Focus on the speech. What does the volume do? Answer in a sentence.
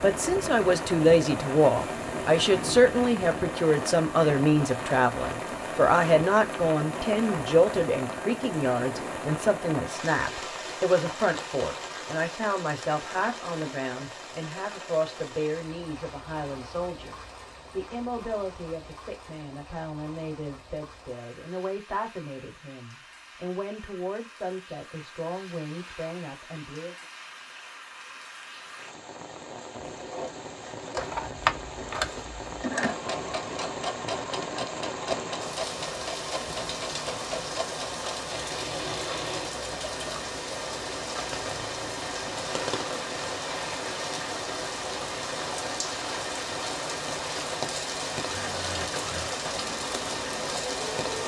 The loudness of the speech goes down.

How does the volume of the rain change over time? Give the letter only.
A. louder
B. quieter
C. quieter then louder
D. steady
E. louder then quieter
C.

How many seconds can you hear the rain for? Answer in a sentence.
The rain can be heard for 51 seconds in total.